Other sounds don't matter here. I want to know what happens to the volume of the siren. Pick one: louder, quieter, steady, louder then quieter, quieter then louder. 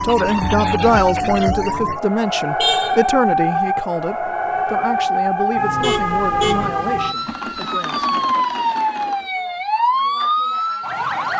steady.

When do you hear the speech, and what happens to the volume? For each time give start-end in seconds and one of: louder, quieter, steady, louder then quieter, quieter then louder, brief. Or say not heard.
0.0-8.3 quieter.